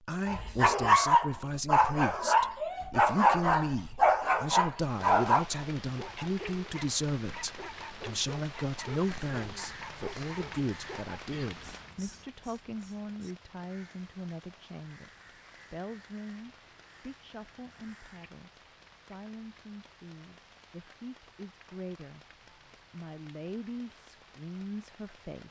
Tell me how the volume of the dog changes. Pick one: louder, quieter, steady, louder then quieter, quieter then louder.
quieter.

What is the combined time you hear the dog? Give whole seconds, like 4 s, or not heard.
11 s.